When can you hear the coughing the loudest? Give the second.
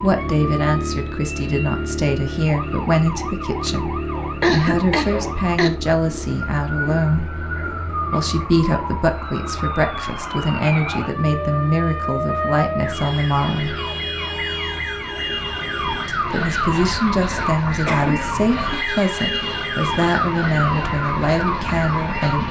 5 s.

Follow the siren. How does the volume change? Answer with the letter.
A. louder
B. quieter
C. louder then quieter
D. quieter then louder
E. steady
A.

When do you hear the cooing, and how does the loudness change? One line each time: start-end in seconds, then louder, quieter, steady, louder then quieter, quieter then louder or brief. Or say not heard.
not heard.